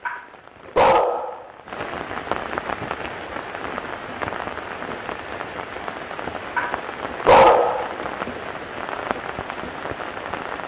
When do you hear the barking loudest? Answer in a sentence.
The loudest moment of the barking is at 7 seconds.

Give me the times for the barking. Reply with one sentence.
The barking can be heard from 0.1 to 1.9 s and from 6.5 to 8.4 s.